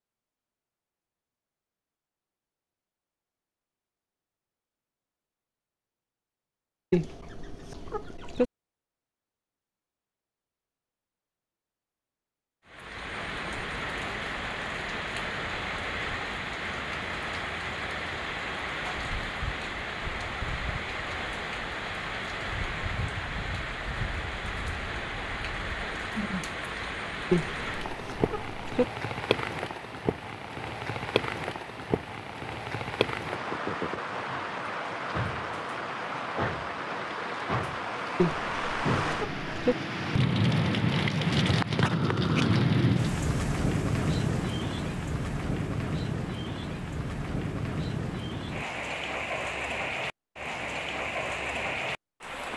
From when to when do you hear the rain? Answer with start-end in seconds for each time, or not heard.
12.7-52.5.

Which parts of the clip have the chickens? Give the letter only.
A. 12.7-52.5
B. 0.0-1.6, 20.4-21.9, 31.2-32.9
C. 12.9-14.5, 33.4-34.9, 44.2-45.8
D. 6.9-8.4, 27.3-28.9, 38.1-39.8
D.